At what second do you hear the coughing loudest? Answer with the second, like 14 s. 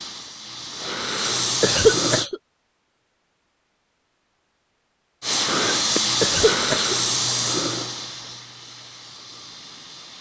2 s.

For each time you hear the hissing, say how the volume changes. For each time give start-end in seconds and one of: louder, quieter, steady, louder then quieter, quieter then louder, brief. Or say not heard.
0.0-2.3 brief
5.2-10.1 quieter.